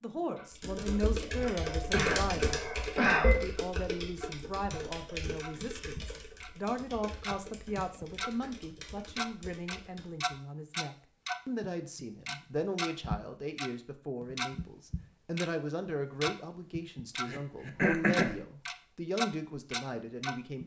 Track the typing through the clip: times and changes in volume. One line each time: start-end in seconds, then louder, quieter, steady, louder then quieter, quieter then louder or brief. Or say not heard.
0.6-10.3 quieter.